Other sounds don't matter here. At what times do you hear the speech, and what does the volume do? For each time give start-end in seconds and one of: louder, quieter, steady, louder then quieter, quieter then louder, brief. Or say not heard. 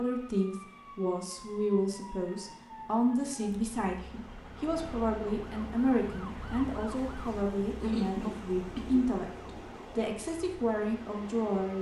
0.0-9.3 steady
9.9-11.7 brief.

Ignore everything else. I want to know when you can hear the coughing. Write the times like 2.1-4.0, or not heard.
7.8-9.1.